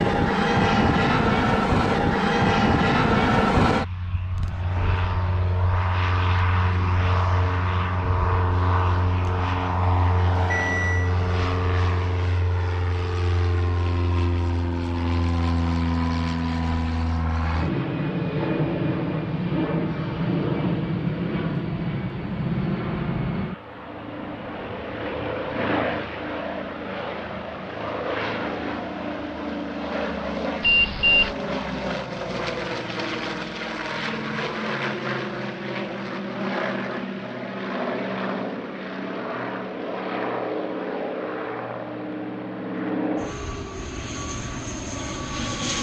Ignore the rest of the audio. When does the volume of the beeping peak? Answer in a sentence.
The loudest moment of the beeping is at 31 seconds.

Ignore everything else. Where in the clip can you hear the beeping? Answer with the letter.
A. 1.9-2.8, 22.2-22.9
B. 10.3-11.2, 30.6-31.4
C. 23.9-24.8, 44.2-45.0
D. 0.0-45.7
B.